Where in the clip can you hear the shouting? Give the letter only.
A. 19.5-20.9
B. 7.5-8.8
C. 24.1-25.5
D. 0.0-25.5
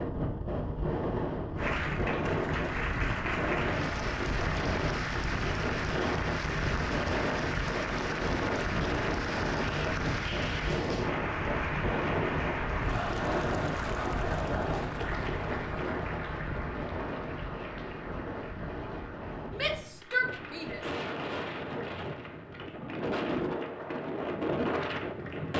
A.